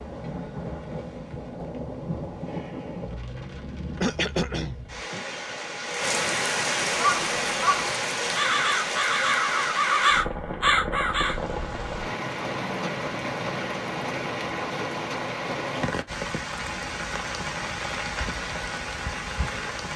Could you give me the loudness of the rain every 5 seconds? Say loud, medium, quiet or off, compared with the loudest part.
medium, loud, loud, loud.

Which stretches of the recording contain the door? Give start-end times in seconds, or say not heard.
not heard.